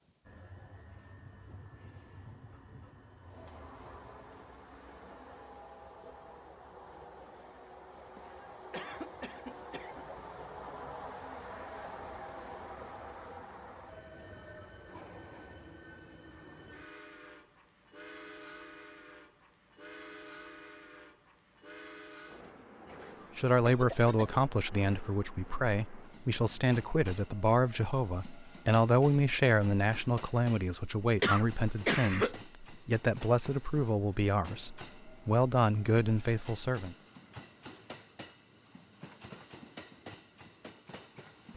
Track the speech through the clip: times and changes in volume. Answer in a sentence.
You can hear the speech from 23.4 to 37.0 s, at a steady volume.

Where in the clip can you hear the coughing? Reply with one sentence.
The coughing can be heard from 8.2 to 10.1 s, from 23.6 to 24.4 s and from 31.2 to 32.4 s.